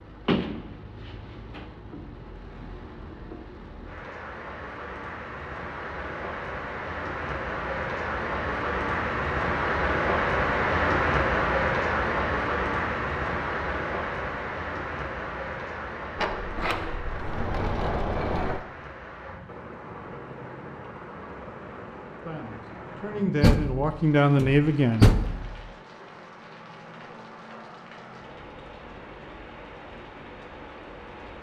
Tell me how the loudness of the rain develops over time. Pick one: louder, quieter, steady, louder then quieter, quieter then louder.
louder then quieter.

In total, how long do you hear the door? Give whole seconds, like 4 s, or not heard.
6 s.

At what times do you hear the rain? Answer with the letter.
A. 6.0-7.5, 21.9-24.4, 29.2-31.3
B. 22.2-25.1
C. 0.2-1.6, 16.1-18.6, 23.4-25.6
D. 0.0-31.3
D.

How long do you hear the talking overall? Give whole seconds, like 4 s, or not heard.
3 s.